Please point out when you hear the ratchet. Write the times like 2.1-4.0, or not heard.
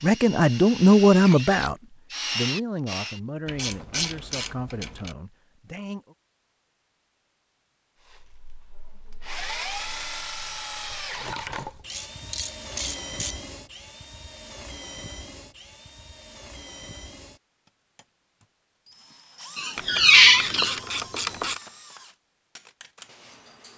3.5-5.2, 11.5-13.3, 19.8-21.6.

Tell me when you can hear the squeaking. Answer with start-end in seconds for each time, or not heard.
19.6-20.8.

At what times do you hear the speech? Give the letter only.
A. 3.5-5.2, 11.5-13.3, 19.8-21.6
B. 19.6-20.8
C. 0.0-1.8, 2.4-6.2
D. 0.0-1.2
C.